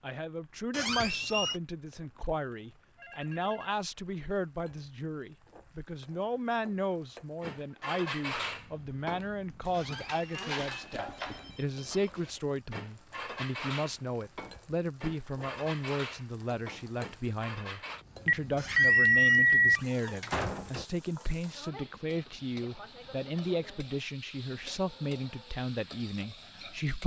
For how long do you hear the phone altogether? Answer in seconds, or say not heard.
3 s.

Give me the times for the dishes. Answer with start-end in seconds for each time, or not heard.
7.4-18.1.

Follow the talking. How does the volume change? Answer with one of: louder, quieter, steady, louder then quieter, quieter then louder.
steady.